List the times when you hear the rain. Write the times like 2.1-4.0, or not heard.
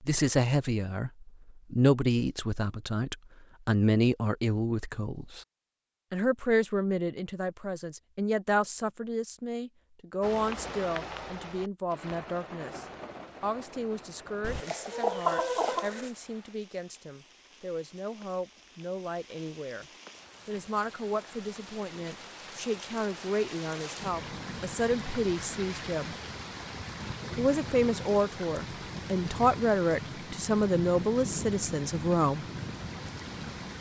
10.2-33.7.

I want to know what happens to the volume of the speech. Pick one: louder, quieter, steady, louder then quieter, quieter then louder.
quieter then louder.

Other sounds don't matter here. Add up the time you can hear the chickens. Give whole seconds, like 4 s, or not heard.
2 s.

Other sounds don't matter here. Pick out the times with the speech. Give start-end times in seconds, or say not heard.
0.0-5.5, 6.1-19.9, 20.4-26.1, 27.4-32.5.